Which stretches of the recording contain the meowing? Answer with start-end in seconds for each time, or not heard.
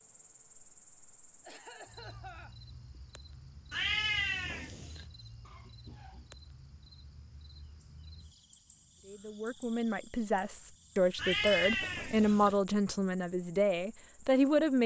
3.7-5.0, 11.2-12.6.